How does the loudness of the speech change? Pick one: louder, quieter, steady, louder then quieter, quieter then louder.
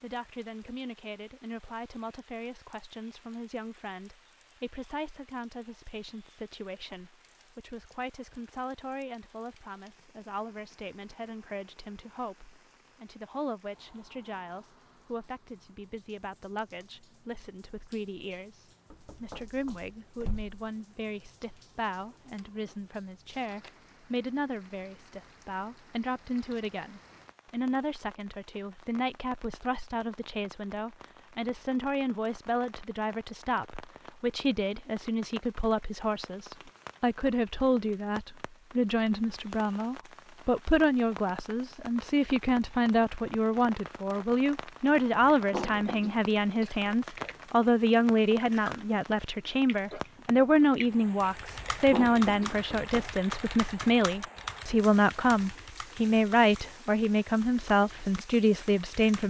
louder.